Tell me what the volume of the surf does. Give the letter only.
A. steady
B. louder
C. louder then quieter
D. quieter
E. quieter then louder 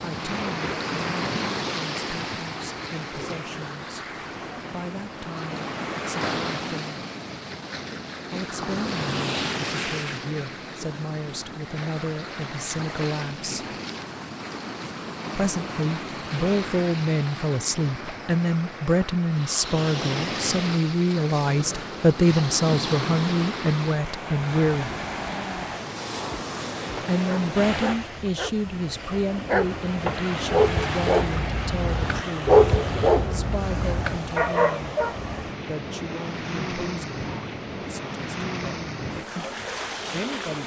A.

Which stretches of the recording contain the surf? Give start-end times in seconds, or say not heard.
0.0-40.6.